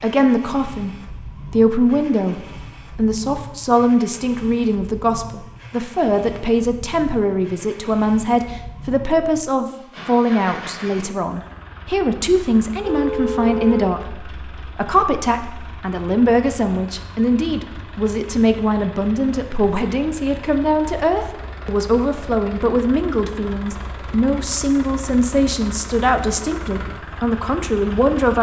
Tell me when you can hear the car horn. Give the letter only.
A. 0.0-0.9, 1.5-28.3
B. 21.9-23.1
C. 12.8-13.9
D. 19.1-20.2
C.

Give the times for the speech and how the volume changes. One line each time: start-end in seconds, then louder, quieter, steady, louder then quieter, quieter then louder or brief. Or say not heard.
0.0-0.9 brief
1.5-28.3 steady.